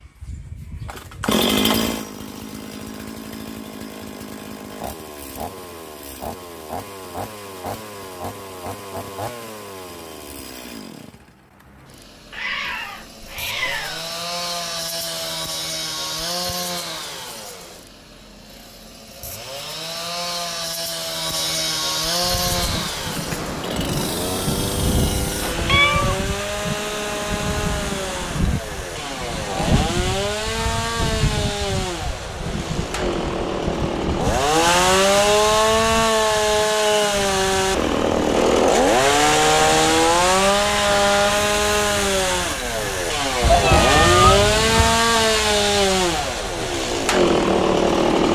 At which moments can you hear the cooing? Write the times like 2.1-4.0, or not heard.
not heard.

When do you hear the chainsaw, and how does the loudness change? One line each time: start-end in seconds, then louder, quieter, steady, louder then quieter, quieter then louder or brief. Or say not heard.
0.0-48.3 louder.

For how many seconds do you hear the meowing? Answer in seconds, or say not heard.
4 s.